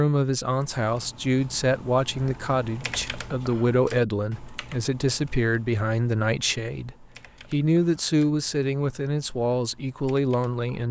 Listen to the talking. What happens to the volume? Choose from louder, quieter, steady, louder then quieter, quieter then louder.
steady.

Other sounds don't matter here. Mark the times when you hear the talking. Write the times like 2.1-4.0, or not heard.
0.0-10.8.